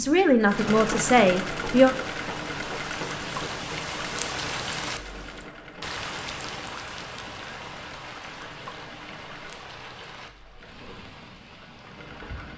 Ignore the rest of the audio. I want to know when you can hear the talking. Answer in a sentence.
You can hear the talking from 0.0 to 1.9 s.